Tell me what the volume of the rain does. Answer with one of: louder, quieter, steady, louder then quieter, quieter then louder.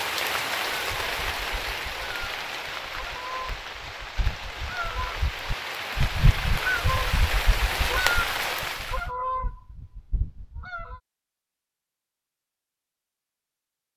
quieter then louder.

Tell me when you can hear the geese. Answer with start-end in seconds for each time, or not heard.
0.7-11.0.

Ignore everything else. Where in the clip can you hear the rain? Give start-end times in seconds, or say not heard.
0.0-9.1.